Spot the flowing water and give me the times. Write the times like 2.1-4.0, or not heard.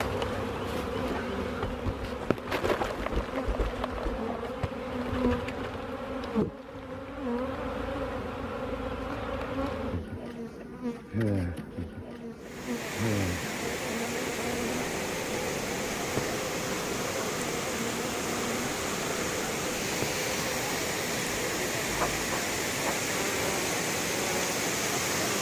12.4-25.3.